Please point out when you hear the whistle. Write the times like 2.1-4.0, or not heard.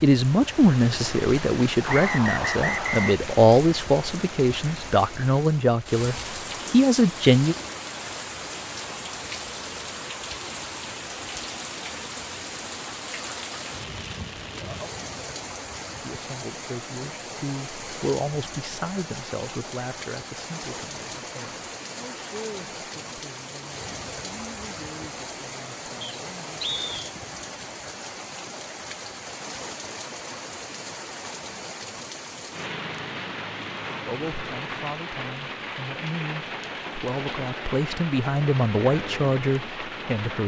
1.9-3.2, 26.0-26.9.